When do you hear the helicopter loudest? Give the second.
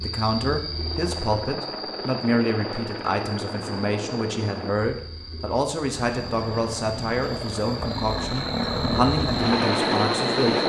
10 s.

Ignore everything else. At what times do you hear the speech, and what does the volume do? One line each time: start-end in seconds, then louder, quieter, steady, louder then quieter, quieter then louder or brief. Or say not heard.
0.0-10.6 steady.